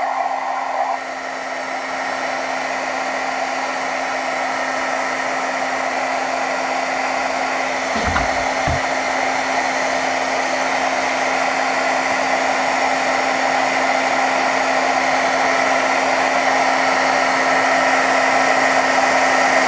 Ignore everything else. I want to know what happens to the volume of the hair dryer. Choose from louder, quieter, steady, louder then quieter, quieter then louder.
louder.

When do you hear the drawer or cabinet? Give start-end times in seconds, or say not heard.
8.0-8.8.